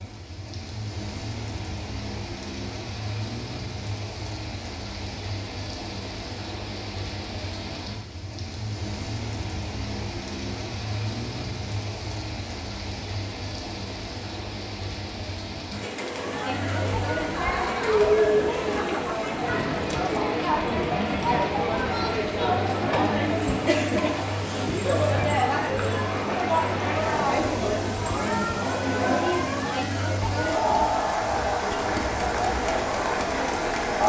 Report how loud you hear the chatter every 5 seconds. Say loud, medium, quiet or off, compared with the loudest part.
off, off, off, loud, loud, loud, loud.